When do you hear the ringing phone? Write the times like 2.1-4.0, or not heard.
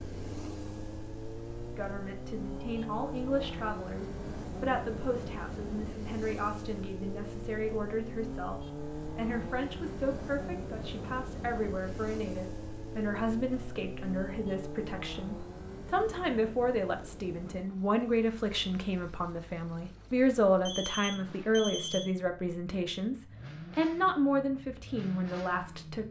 20.6-22.1.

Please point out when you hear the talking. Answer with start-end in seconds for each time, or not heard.
1.8-26.0.